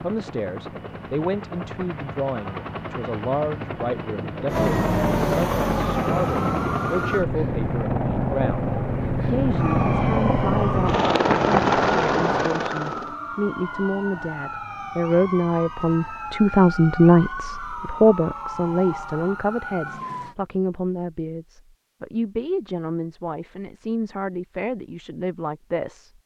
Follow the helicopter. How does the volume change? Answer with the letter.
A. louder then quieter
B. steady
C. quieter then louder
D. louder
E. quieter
D.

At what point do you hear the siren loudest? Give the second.
5 s.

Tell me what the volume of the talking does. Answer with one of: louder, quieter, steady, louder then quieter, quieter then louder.
louder then quieter.